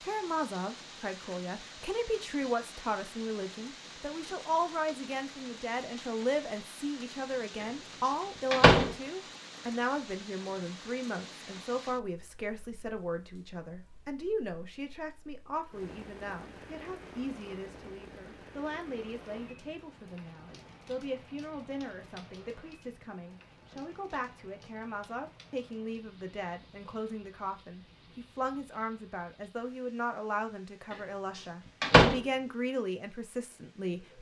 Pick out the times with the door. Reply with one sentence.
The door can be heard from 8.1 to 8.9 s and from 31.4 to 32.2 s.